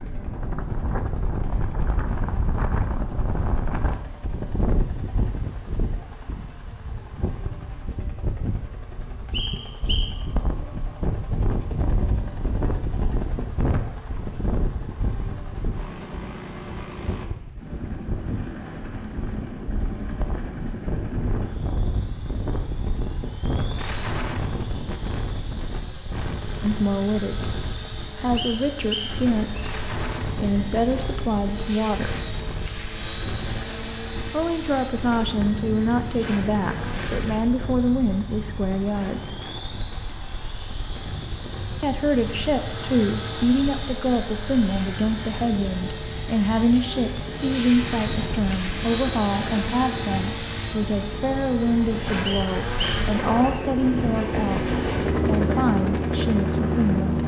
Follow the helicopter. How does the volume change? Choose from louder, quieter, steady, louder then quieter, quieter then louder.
louder.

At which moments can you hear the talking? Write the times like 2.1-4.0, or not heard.
26.6-32.2, 34.3-39.4, 41.8-57.2.